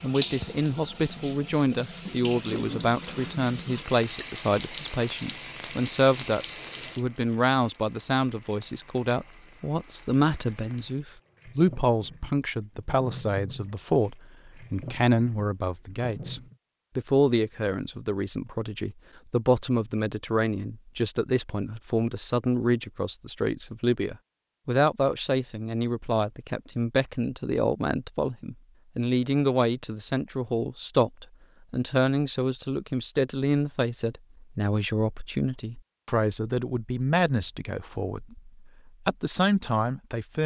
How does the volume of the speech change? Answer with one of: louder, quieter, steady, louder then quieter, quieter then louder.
steady.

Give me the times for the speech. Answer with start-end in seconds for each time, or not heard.
0.0-40.4.